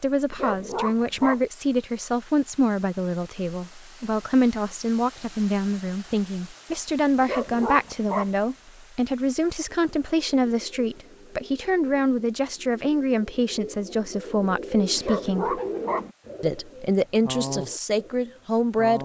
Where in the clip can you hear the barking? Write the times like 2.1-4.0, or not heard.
0.3-1.4, 7.2-8.3, 14.9-16.1.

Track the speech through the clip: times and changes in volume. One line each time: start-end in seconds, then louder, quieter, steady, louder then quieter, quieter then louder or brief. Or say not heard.
0.0-15.6 steady
16.4-19.0 brief.